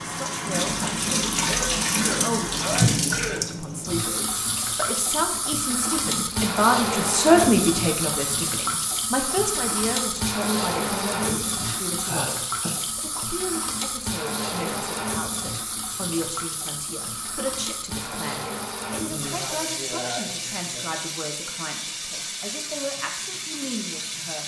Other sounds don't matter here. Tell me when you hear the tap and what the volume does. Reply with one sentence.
The tap can be heard from 0.0 to 24.4 s, getting quieter.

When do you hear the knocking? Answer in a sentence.
You can't hear the knocking here.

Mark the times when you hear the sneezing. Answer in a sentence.
The sneezing can be heard from 1.4 to 3.4 s, from 11.6 to 12.8 s and from 18.9 to 21.0 s.